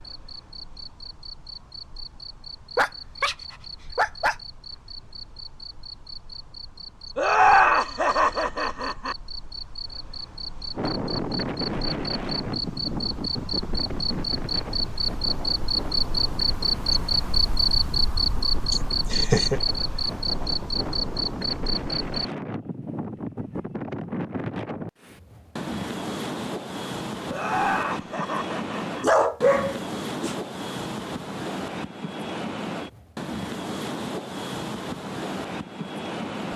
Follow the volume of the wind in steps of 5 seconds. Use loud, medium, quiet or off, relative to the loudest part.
off, off, loud, medium, loud, loud, loud, loud.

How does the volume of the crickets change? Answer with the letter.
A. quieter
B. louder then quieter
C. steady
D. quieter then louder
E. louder
E.